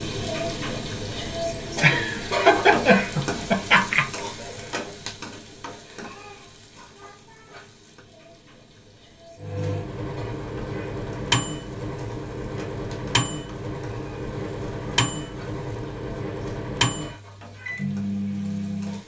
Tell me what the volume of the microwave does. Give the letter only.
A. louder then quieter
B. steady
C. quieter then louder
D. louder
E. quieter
B.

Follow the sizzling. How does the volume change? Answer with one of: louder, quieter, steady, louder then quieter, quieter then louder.
quieter.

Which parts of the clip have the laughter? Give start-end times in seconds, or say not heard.
1.8-4.2.